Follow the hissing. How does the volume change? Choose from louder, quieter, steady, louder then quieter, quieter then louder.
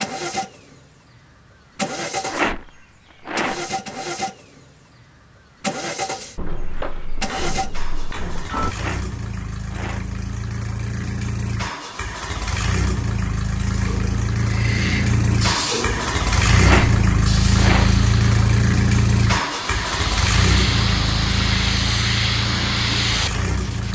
quieter then louder.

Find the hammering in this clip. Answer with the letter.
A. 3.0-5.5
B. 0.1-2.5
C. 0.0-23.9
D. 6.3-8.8
D.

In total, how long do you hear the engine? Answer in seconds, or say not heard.
24 s.